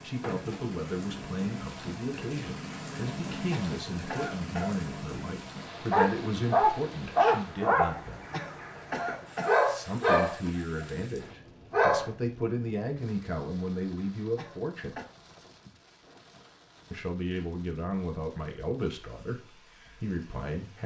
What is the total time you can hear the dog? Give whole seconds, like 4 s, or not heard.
6 s.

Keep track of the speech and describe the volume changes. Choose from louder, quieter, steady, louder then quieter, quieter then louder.
steady.